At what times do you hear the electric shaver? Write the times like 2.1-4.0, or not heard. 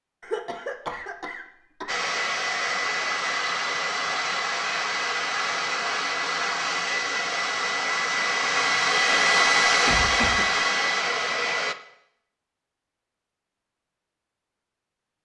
not heard.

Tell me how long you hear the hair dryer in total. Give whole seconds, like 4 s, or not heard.
10 s.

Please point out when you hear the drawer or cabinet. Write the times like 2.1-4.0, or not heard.
not heard.